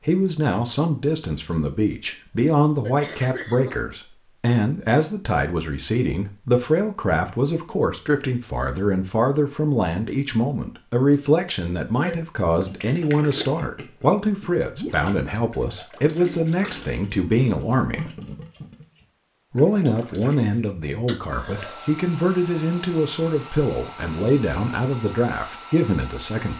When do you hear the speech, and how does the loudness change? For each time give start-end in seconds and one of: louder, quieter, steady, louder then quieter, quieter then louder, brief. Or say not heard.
0.1-18.1 steady
19.5-26.5 steady.